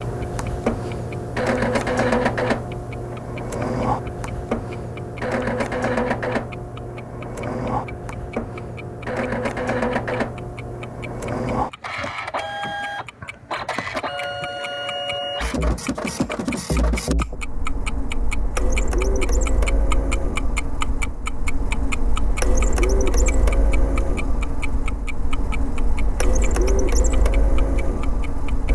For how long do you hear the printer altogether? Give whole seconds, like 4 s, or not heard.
29 s.